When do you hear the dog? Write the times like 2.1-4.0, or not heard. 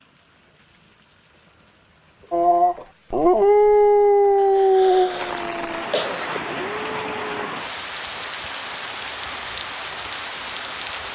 2.3-7.2.